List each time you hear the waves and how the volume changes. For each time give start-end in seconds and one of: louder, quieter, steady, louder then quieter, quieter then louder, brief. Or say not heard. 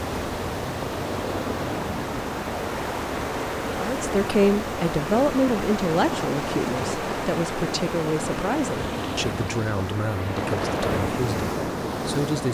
0.0-12.4 steady.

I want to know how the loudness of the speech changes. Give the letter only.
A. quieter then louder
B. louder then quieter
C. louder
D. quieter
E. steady
D.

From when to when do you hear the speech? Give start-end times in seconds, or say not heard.
3.8-12.4.